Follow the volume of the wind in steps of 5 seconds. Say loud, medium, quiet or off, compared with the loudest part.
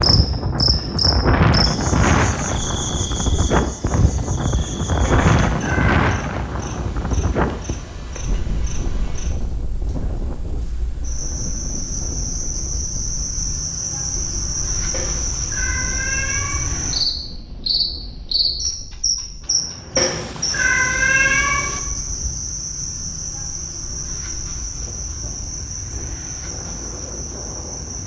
loud, loud, quiet, quiet, quiet, quiet.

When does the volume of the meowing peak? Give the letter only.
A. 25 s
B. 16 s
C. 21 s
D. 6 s
C.